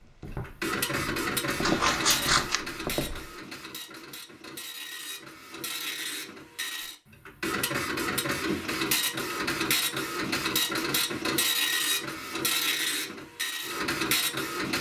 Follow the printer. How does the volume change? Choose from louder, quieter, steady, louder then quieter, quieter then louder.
quieter then louder.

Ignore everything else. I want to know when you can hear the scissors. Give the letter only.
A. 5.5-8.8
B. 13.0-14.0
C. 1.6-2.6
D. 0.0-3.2
C.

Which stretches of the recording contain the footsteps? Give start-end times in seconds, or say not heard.
0.0-3.2.